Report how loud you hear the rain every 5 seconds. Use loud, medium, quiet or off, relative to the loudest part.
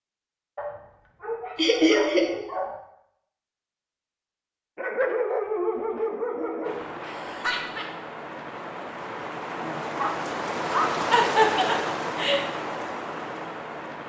off, medium, loud.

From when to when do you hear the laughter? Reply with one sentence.
You can hear the laughter from 1.6 to 2.2 s, from 7.0 to 7.8 s and from 11.1 to 12.4 s.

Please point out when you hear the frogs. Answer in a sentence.
The frogs can't be heard in this clip.